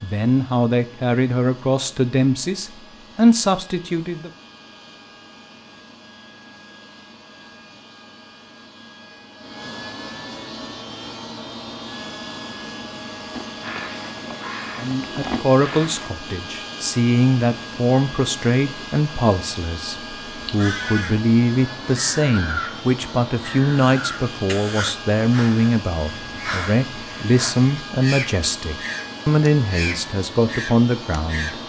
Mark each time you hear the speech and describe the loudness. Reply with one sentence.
The speech can be heard from 0.0 to 4.3 s, getting quieter then louder; and from 14.8 to 31.6 s, at a steady volume.